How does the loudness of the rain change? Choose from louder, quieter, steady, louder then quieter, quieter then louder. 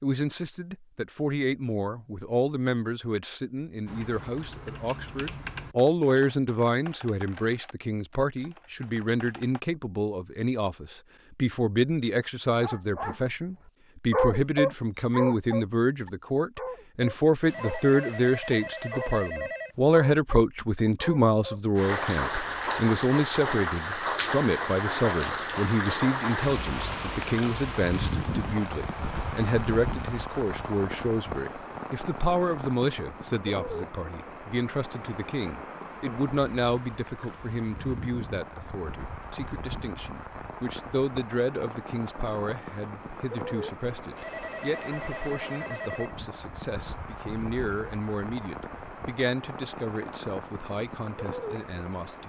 quieter.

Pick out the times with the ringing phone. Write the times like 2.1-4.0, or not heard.
17.4-19.8, 44.1-46.1.